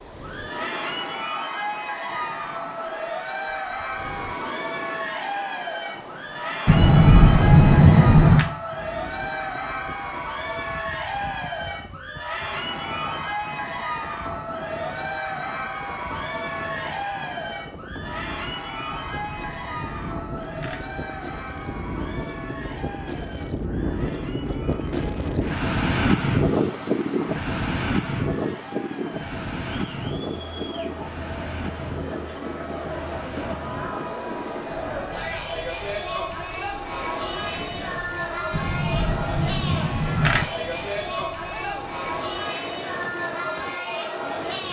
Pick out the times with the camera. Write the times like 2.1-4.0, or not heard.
6.7-8.4, 18.9-20.9, 38.5-40.5.